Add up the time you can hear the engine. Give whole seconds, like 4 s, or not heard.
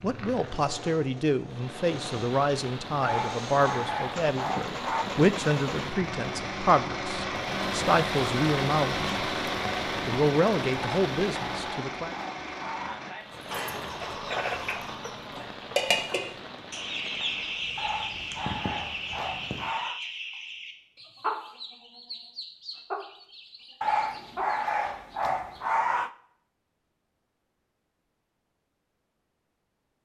15 s.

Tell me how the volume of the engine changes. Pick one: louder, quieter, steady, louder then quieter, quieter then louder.
louder then quieter.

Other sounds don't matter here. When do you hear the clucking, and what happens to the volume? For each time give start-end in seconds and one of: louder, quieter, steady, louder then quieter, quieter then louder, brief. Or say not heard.
13.3-24.7 quieter.